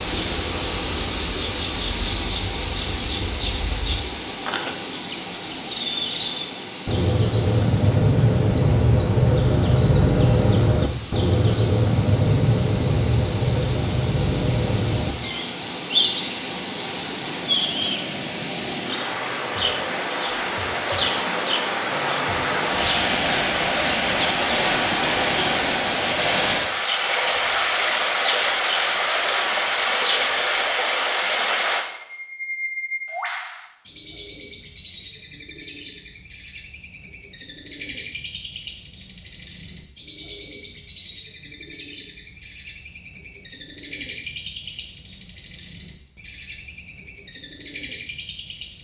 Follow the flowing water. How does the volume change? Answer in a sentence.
The loudness of the flowing water goes down, then up.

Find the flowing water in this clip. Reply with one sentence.
The flowing water can be heard from 0.0 to 31.9 s.